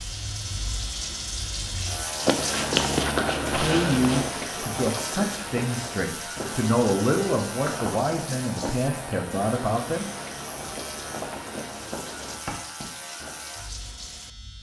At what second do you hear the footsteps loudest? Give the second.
3 s.